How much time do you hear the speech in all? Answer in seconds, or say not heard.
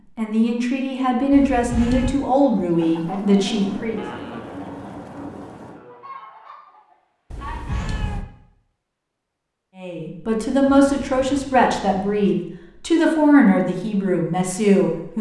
9 s.